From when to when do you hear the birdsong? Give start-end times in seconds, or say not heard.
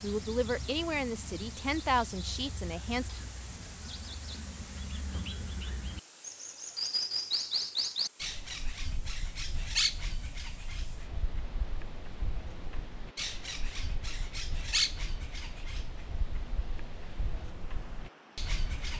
0.0-18.9.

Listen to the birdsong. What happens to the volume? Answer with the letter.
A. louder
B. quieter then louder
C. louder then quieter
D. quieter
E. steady
C.